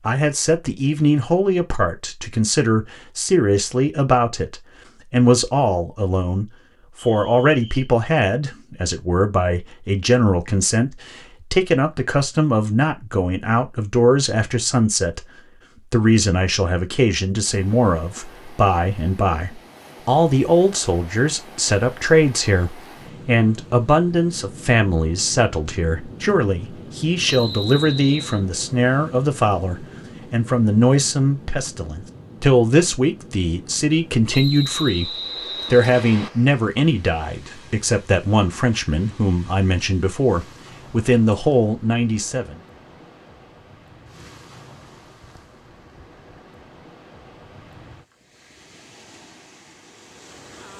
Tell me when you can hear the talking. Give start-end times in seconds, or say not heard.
0.0-42.6.